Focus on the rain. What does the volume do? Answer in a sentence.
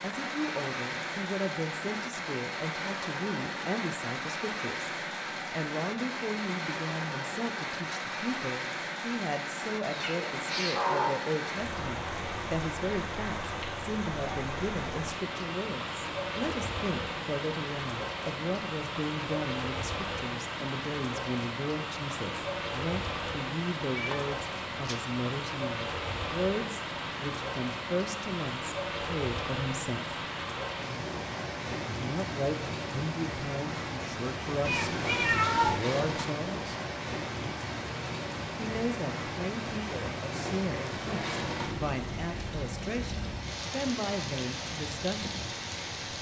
The loudness of the rain stays about the same.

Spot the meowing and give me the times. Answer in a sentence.
You can hear the meowing from 9.9 to 11.1 s, from 23.9 to 25.0 s and from 34.6 to 35.8 s.